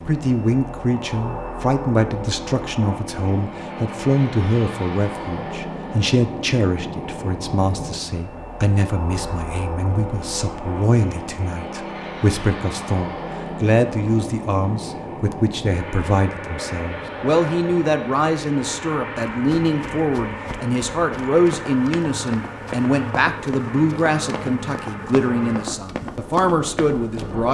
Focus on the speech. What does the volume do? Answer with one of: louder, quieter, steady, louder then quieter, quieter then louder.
steady.